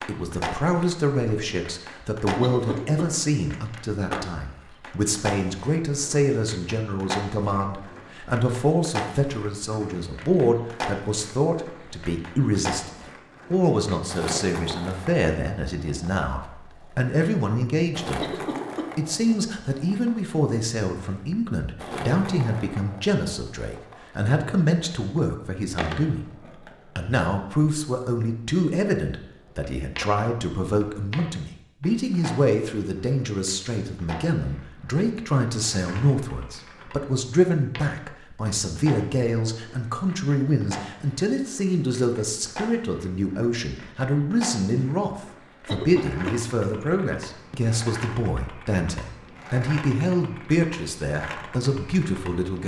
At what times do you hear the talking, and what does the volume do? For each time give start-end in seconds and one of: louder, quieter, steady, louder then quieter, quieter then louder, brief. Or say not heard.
0.0-52.6 steady.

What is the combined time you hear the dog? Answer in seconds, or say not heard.
not heard.